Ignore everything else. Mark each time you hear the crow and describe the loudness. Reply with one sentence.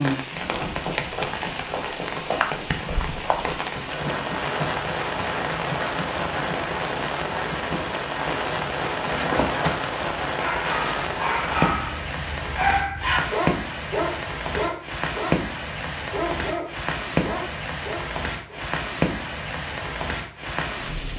You can't hear the crow here.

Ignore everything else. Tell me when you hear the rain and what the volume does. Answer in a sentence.
The rain can be heard from 0.0 to 21.1 s, at a steady volume.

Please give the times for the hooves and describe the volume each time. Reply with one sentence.
You can hear the hooves from 0.3 to 9.8 s, at a steady volume.